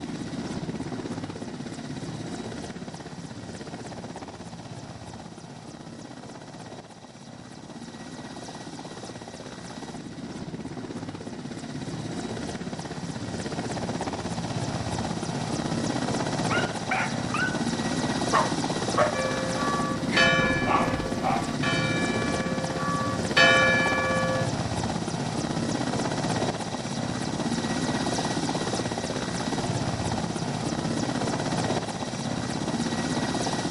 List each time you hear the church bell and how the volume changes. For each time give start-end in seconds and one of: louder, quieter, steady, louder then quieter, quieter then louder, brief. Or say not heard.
19.1-24.4 quieter then louder.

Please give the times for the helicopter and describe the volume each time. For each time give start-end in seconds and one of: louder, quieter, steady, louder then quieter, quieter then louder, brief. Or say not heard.
0.0-33.6 louder.